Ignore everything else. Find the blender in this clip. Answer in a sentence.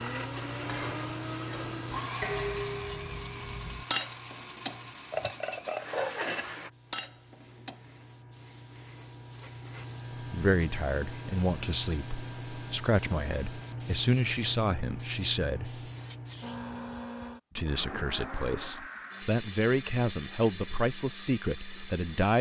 You can hear the blender from 0.0 to 6.7 s and from 16.4 to 22.3 s.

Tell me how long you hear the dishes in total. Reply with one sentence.
The dishes can be heard for 7 seconds in total.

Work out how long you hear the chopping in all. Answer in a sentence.
You can't hear the chopping here.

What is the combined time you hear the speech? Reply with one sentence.
The speech can be heard for 10 seconds in total.